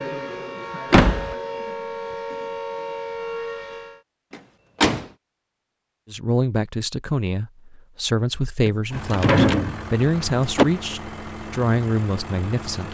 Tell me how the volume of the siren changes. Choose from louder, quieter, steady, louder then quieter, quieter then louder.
steady.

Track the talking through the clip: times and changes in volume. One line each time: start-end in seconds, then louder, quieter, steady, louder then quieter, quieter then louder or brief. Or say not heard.
6.1-12.8 steady.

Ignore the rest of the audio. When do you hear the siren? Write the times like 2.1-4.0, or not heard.
0.0-4.0.